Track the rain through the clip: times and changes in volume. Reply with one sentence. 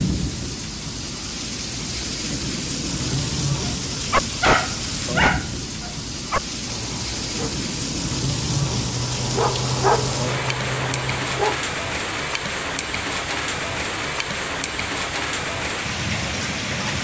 You can hear the rain from 0.0 to 16.9 s, at a steady volume.